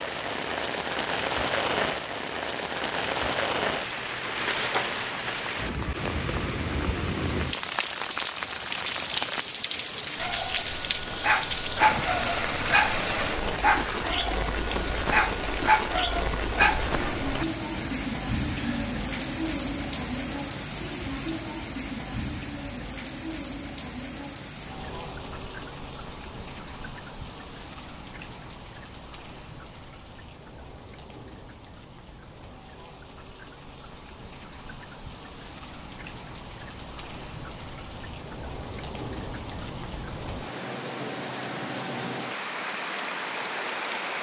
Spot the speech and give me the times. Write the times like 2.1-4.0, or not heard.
not heard.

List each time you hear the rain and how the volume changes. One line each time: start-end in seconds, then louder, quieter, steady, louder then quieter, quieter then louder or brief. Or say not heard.
0.0-44.1 quieter then louder.